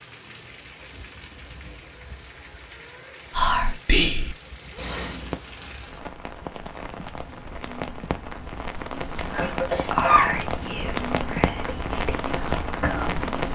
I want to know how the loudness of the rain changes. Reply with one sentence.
The loudness of the rain goes up.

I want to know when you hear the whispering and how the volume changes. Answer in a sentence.
The whispering can be heard briefly from 3.4 to 5.4 s; and from 9.2 to 13.4 s, getting quieter then louder.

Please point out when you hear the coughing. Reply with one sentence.
You can hear the coughing from 9.4 to 10.3 s.